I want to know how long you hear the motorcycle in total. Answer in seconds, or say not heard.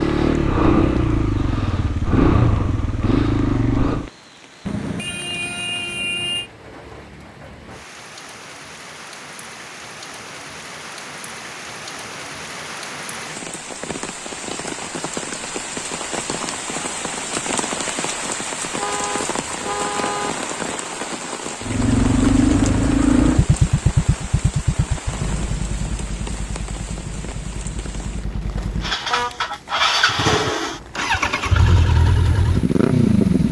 16 s.